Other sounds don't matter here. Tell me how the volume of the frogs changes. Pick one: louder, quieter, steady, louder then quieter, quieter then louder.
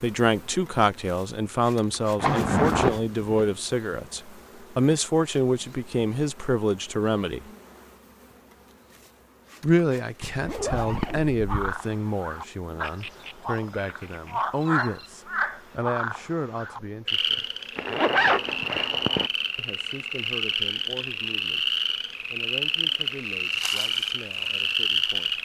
louder.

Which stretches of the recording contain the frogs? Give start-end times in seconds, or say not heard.
11.4-25.4.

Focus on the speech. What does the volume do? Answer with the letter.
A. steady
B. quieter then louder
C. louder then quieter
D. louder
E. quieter
E.